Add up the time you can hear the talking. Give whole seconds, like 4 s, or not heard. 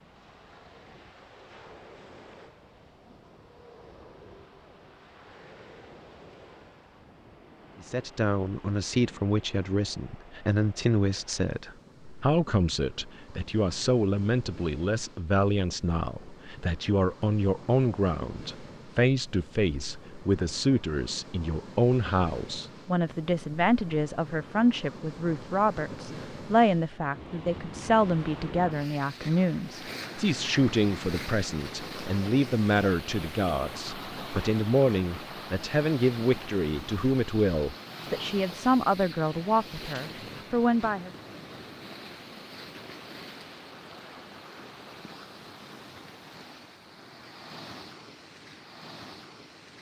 33 s.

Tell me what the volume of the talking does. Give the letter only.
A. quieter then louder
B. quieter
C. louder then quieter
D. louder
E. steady
E.